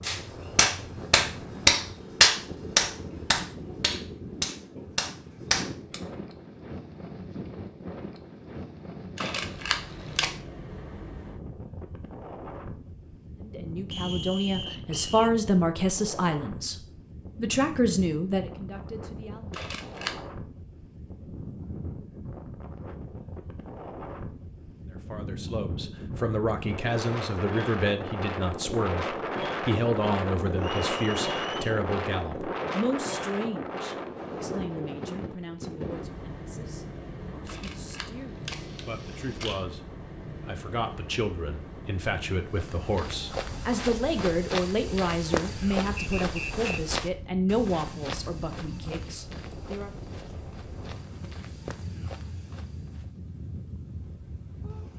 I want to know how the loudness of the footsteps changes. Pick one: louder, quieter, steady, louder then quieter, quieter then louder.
quieter.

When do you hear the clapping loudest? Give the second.
2 s.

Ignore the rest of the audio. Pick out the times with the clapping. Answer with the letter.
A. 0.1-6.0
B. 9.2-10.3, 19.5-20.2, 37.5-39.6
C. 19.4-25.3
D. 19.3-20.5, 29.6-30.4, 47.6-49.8
A.